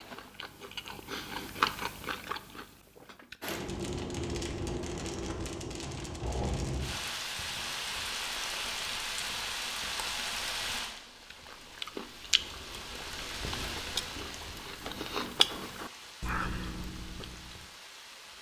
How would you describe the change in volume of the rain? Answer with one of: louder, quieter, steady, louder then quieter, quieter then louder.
quieter.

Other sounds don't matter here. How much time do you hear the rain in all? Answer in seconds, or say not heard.
15 s.